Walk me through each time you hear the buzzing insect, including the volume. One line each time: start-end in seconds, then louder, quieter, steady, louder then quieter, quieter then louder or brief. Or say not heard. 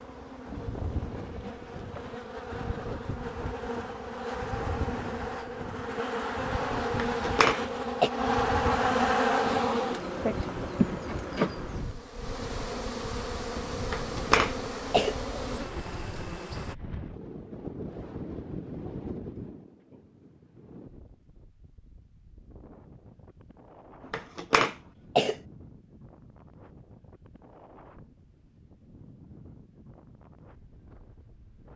0.0-16.8 louder then quieter.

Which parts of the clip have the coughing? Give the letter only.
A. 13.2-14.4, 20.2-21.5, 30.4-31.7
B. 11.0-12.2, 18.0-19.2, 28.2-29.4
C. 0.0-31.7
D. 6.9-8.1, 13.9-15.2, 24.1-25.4
D.